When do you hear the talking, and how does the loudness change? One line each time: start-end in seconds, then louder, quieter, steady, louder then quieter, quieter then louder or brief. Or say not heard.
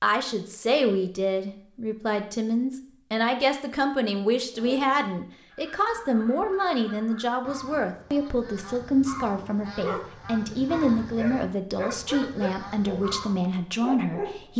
0.0-14.5 steady.